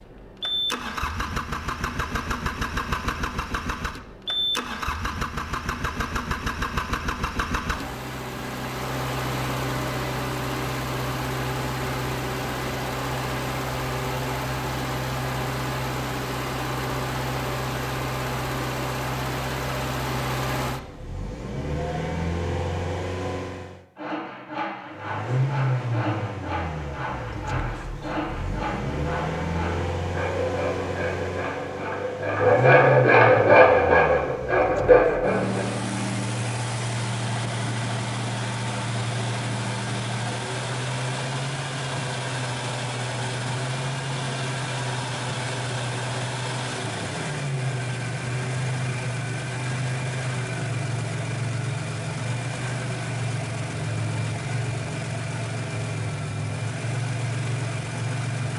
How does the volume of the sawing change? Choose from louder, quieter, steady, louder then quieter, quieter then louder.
louder.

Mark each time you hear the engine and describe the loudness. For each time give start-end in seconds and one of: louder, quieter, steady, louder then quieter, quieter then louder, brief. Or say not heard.
0.0-23.8 steady
24.9-58.5 steady.